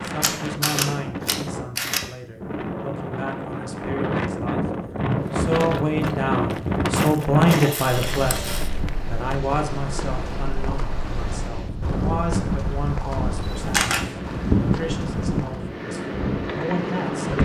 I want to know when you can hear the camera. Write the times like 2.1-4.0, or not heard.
0.2-2.0, 7.5-8.7, 13.5-14.1.